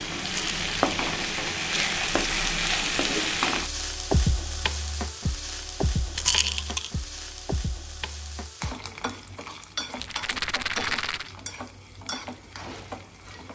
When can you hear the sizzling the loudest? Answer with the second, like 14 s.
3 s.